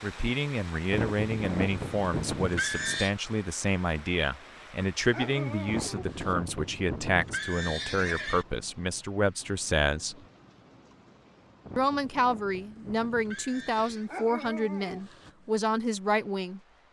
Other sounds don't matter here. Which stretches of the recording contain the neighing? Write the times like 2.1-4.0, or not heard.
0.9-3.1, 5.7-8.4, 11.7-14.1.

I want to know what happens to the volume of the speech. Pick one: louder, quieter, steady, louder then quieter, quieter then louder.
steady.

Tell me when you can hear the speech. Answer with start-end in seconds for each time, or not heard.
0.0-10.2, 11.8-16.6.